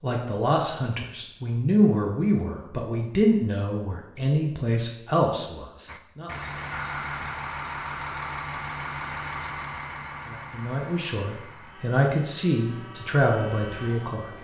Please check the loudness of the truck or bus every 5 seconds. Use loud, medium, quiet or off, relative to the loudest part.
off, loud, medium.